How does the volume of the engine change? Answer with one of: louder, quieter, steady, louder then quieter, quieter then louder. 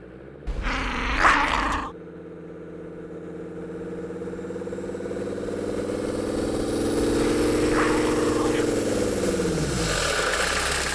louder.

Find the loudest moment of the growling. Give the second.
1 s.